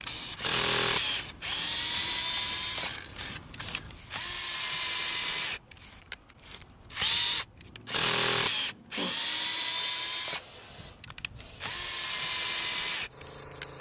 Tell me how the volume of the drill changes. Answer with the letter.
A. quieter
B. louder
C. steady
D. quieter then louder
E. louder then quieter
C.